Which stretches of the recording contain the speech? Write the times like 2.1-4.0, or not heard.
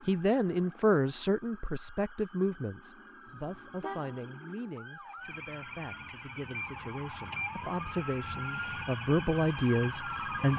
0.1-10.5.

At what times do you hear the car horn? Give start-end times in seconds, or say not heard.
3.2-4.2.